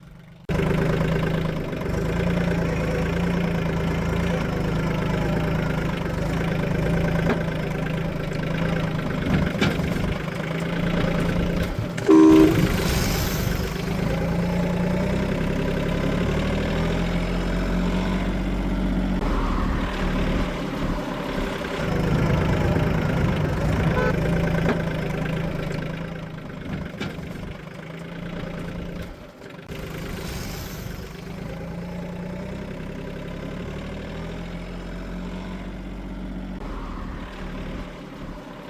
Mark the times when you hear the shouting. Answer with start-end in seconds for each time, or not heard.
not heard.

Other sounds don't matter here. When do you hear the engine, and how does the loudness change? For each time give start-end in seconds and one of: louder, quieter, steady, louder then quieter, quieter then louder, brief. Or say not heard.
0.0-38.6 quieter.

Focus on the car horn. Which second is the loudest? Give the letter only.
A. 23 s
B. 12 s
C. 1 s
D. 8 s
B.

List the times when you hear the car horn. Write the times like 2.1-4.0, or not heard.
11.8-12.7, 22.1-24.1.